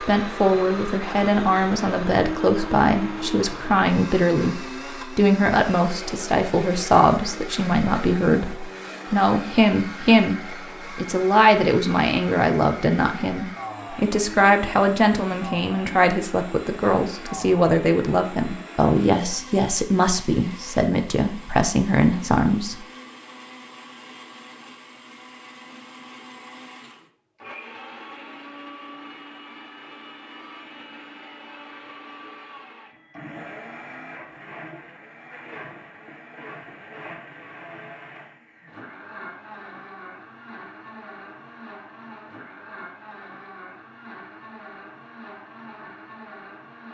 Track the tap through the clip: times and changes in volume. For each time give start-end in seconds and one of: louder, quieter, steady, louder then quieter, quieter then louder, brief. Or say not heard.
not heard.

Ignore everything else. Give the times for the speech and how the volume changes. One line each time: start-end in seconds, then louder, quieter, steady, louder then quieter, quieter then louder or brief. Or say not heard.
0.0-22.8 steady.